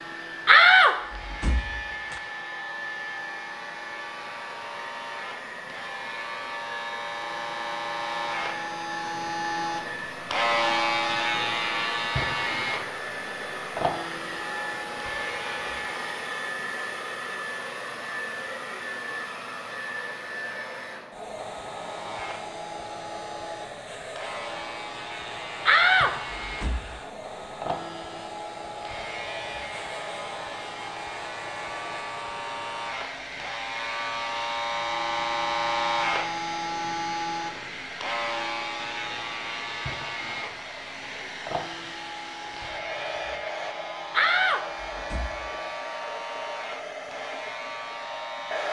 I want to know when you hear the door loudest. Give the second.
1 s.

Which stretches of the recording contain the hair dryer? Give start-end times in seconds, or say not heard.
0.0-48.6.